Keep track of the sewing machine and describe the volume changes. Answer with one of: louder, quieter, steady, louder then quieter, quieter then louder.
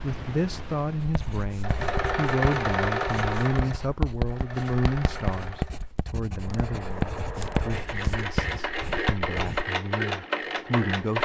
quieter then louder.